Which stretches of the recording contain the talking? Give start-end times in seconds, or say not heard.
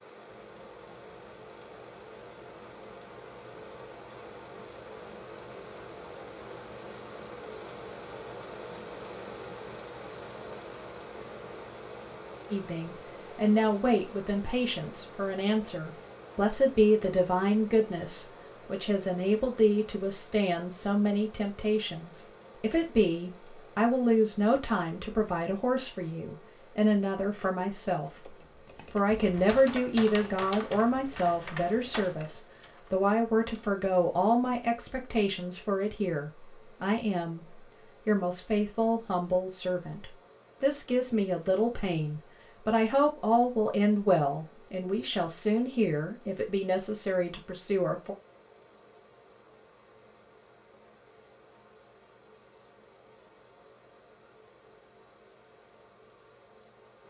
12.5-28.3, 28.9-48.1.